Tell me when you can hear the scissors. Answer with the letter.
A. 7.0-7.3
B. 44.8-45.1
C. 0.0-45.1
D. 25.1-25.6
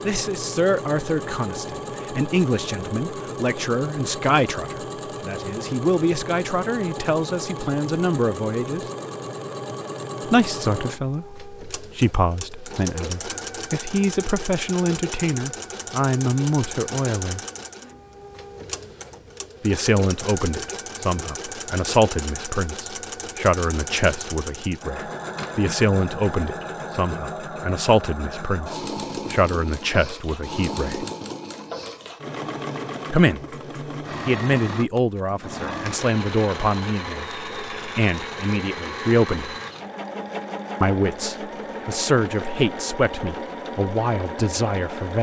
D.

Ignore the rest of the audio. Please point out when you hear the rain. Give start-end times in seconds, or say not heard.
not heard.